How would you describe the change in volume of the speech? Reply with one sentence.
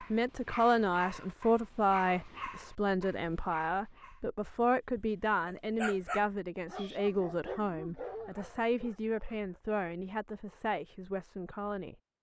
The volume of the speech goes down.